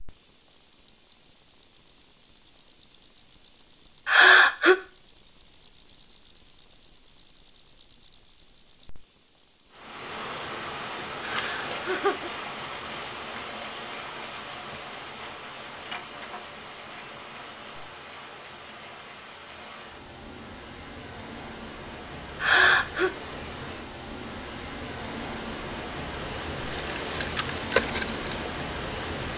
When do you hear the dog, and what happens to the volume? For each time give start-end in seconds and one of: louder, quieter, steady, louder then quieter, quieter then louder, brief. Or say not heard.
not heard.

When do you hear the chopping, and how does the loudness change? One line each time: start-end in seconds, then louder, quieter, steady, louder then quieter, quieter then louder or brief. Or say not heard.
not heard.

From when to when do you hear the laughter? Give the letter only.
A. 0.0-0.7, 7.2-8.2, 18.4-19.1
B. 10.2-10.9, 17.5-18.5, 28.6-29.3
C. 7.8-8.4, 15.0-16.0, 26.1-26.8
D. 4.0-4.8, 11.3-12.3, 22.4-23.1
D.